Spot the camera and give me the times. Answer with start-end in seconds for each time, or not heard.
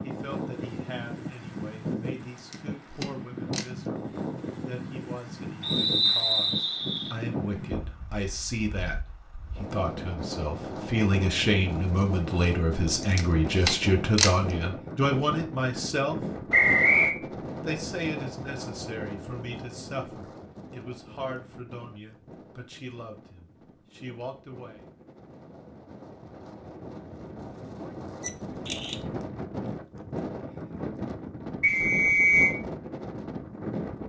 2.4-3.7, 13.0-14.3, 28.2-29.1.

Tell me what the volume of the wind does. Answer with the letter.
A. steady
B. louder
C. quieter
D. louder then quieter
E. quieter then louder
E.